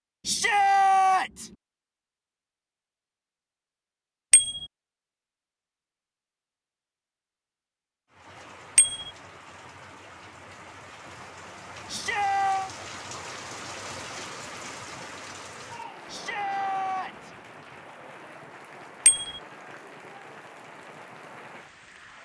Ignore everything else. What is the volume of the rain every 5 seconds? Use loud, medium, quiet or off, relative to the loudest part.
off, medium, loud, loud, medium.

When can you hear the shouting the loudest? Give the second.
1 s.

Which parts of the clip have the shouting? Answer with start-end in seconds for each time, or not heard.
0.2-1.5, 11.8-12.7, 16.1-17.3.